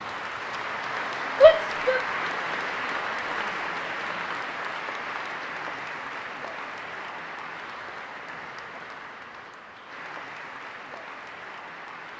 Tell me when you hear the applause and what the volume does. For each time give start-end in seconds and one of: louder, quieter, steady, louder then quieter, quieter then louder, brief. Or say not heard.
0.0-12.1 quieter.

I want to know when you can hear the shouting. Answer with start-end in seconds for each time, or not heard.
1.4-2.0.